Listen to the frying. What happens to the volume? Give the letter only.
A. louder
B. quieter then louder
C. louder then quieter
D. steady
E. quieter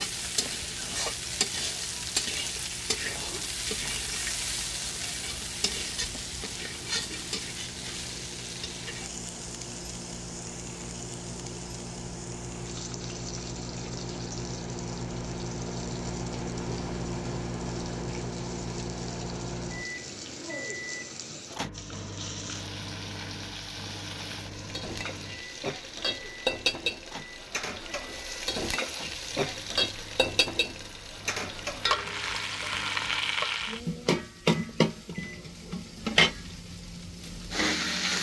B.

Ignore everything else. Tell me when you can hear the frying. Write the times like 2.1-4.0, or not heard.
0.0-38.1.